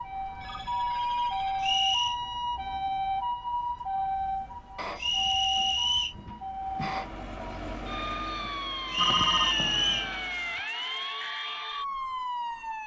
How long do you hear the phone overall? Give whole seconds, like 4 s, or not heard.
5 s.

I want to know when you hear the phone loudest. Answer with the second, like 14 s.
9 s.